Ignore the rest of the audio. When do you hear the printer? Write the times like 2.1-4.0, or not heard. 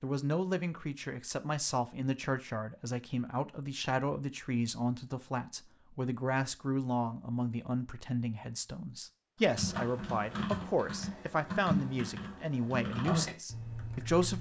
not heard.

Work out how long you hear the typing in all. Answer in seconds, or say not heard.
5 s.